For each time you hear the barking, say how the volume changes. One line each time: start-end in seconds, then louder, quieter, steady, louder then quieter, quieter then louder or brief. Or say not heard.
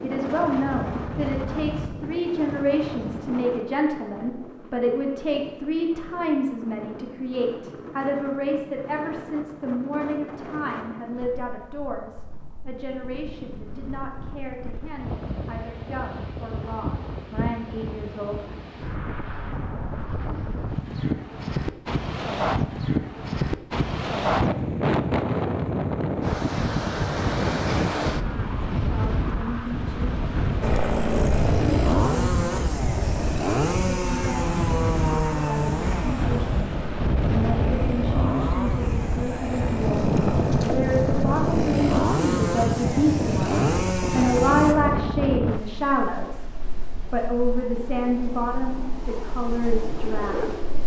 not heard.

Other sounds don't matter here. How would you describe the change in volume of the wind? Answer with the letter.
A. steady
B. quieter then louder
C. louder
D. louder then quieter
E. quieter
C.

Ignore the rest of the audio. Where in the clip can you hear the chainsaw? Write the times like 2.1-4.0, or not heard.
30.6-44.8.